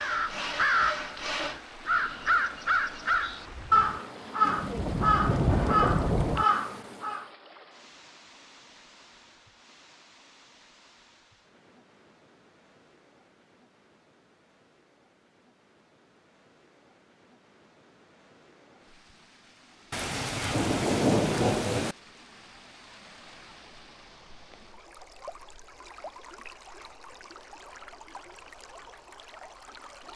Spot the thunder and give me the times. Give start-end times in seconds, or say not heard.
4.5-6.5, 19.9-21.9.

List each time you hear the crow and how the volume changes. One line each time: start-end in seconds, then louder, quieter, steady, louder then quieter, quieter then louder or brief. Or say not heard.
0.0-7.2 steady.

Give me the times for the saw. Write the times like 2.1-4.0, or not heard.
0.0-1.6.